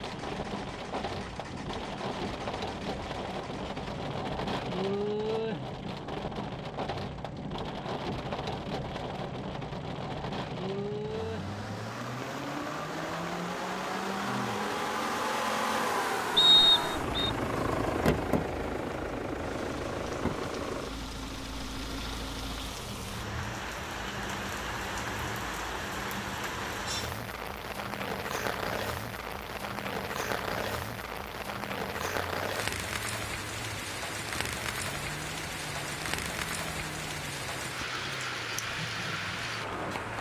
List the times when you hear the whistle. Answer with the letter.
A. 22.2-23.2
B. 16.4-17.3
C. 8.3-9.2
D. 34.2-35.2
B.